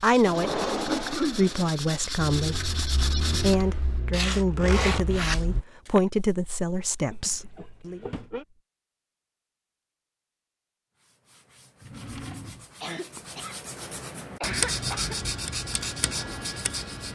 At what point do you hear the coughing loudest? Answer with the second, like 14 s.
1 s.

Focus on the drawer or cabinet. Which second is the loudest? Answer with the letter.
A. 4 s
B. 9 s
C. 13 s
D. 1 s
D.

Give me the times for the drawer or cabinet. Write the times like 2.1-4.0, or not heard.
0.2-1.7, 8.0-8.4, 11.8-12.8.